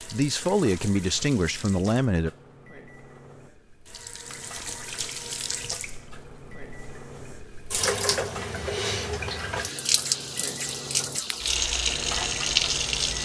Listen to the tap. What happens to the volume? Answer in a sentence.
The loudness of the tap goes up.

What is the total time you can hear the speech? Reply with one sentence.
You can hear the speech for 2 seconds altogether.